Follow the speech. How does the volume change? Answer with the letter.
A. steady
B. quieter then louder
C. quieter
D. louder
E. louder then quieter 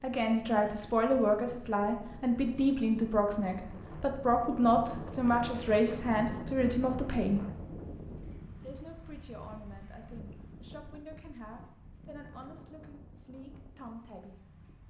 C.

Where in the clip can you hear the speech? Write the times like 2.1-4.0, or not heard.
0.0-7.5, 8.6-14.3.